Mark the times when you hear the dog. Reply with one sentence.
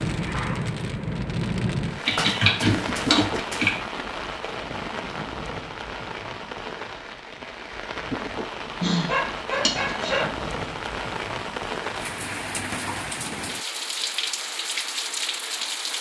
You can hear the dog from 2.0 to 3.8 s and from 8.8 to 10.4 s.